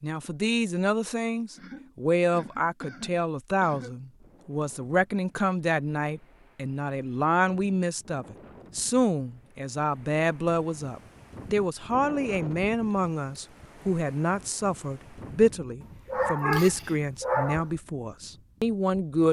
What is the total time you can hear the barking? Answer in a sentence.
You can hear the barking for 2 seconds altogether.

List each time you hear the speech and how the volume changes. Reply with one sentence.
The speech can be heard from 0.0 to 19.2 s, at a steady volume.